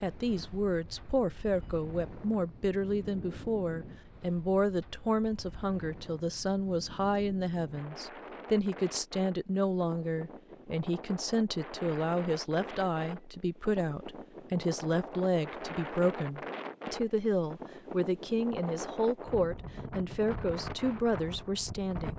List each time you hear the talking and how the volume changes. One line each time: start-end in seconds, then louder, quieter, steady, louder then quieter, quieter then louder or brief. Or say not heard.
0.0-22.1 steady.